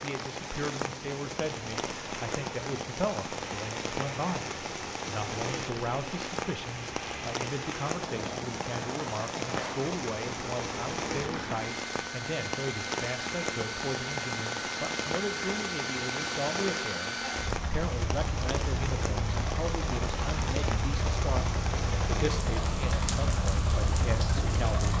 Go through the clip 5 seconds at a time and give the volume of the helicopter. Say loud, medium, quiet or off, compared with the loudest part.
medium, medium, loud, loud, loud.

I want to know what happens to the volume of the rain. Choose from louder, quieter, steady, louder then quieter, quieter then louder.
steady.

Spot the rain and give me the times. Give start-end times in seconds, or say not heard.
0.0-24.9.